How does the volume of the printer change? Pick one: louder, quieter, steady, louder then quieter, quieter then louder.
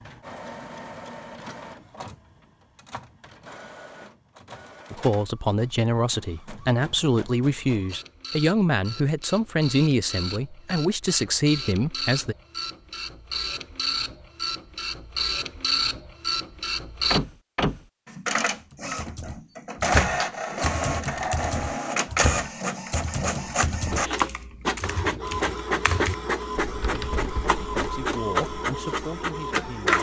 louder.